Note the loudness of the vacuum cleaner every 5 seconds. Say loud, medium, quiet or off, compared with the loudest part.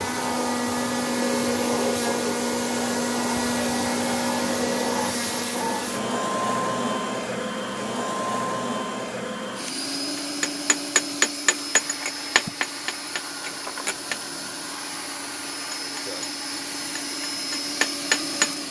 loud, loud, medium, medium.